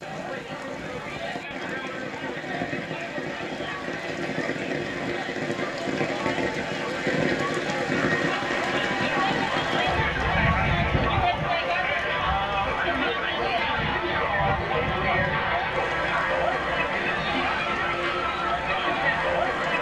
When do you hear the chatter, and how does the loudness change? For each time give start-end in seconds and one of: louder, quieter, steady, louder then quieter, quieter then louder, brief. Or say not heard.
0.0-19.7 louder.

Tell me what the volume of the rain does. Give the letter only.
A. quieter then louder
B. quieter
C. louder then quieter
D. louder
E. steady
C.